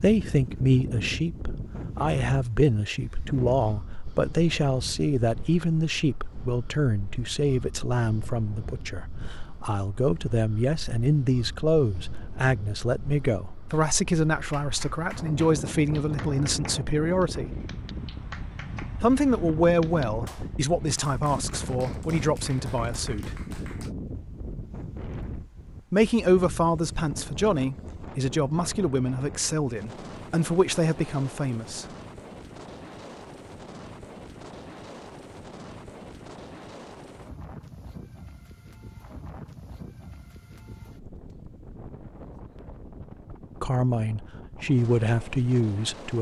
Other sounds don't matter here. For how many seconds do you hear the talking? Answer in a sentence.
The talking can be heard for 30 seconds in total.